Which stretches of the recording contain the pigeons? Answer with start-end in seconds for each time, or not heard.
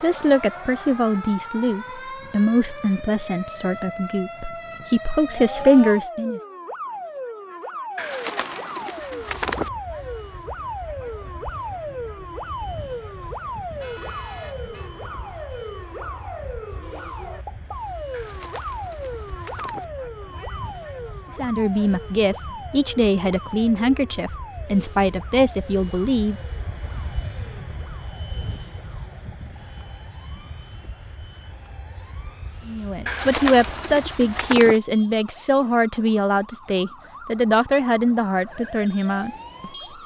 8.0-9.7, 18.1-19.9, 33.0-34.8.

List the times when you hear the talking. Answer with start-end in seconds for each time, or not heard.
0.0-6.4, 21.4-26.4, 32.6-40.0.